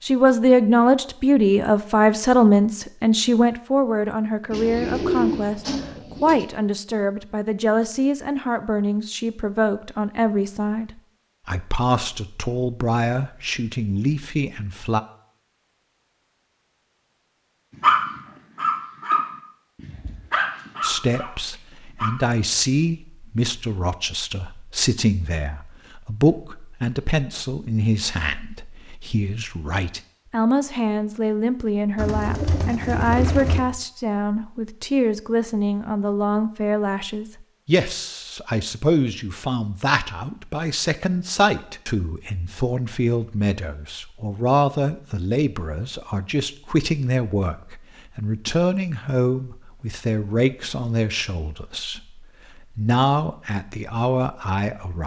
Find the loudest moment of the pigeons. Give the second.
5 s.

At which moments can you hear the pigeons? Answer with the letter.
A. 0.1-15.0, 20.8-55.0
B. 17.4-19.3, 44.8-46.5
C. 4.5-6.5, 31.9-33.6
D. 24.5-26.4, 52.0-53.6
C.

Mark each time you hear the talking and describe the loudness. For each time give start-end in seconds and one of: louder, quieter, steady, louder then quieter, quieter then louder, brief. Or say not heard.
0.1-15.0 quieter
20.8-55.0 steady.